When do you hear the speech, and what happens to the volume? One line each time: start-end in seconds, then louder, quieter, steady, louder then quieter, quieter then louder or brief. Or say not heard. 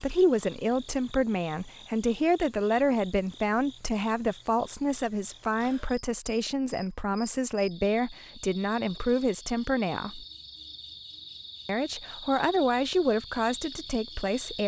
0.0-10.2 steady
11.7-14.6 brief.